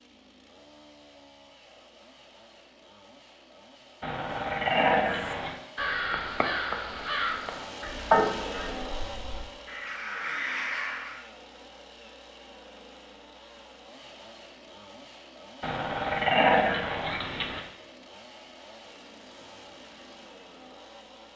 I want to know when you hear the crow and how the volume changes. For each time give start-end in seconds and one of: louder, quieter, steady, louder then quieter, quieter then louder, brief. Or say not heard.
5.0-11.2 quieter then louder.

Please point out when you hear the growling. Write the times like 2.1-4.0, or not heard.
4.0-5.5, 8.1-8.8, 15.6-17.6.